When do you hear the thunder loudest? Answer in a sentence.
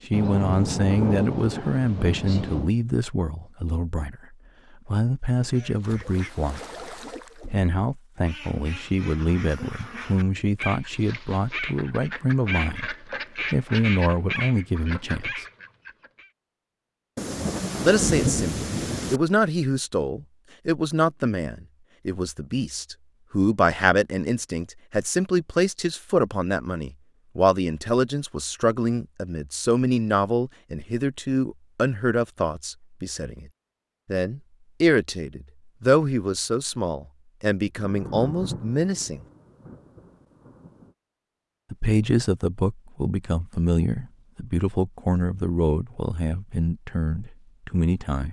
The volume of the thunder peaks at 18 seconds.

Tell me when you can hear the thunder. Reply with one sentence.
You can hear the thunder from 0.1 to 2.7 s, from 17.1 to 19.2 s and from 37.8 to 40.9 s.